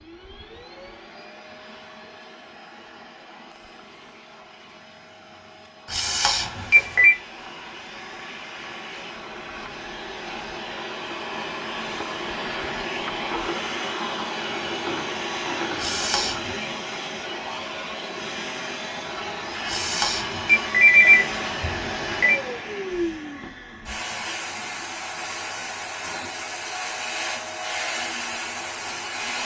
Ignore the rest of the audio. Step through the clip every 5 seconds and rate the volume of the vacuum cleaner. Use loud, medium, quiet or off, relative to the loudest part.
quiet, medium, loud, loud, loud, loud.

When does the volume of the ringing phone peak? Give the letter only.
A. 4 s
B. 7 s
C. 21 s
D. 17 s
C.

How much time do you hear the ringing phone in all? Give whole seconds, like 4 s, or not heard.
5 s.